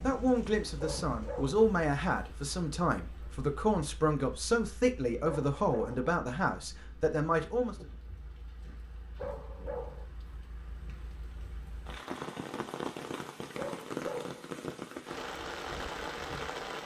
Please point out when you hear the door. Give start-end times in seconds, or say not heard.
not heard.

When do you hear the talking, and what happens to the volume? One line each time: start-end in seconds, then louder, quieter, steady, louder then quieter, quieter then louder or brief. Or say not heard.
0.0-7.8 steady.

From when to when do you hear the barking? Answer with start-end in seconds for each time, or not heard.
0.8-1.6, 5.2-6.1, 9.2-10.1, 13.6-14.4.